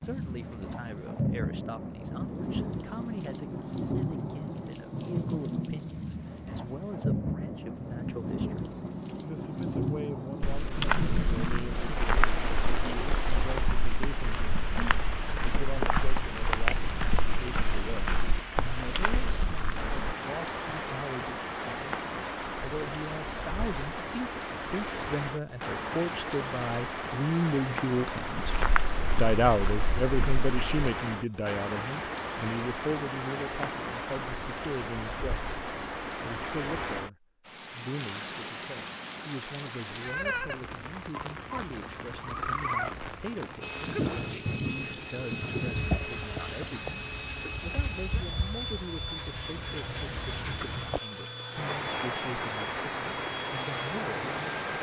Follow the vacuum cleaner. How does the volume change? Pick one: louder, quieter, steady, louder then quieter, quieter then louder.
steady.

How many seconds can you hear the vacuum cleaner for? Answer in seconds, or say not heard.
11 s.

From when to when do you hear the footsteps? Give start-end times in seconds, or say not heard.
10.4-20.1, 28.4-30.9.